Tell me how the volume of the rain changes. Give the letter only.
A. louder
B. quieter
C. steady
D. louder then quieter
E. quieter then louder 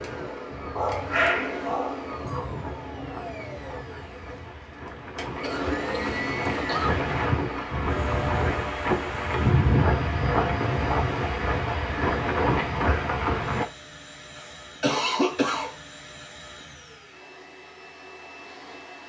A.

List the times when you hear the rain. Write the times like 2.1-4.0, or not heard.
0.0-13.7.